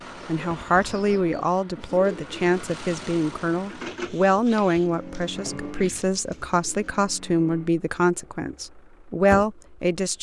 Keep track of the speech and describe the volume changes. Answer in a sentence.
The volume of the speech stays about the same.